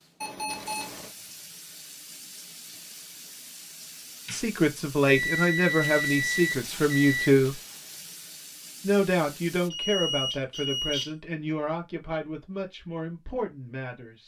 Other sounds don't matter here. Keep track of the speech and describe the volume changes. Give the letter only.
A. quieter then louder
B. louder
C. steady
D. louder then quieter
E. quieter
E.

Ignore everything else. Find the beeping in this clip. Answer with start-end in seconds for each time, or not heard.
0.2-1.1, 5.0-7.3, 9.7-11.1.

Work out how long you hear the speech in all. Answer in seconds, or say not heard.
9 s.